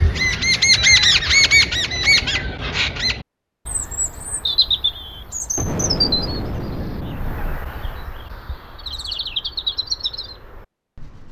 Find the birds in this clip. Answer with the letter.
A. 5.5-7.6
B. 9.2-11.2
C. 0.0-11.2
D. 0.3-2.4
C.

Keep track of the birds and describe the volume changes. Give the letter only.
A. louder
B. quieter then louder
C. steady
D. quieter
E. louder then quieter
B.